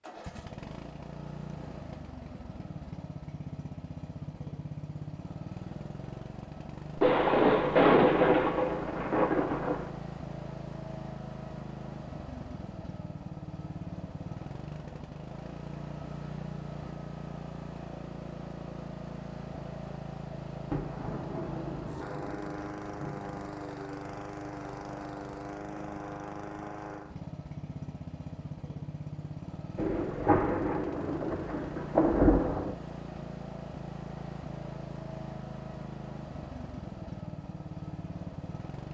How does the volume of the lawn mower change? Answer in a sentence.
The volume of the lawn mower stays about the same.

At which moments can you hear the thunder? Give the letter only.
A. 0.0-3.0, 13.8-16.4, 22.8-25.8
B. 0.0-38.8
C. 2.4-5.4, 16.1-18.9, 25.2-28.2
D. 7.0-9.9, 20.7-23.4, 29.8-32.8
D.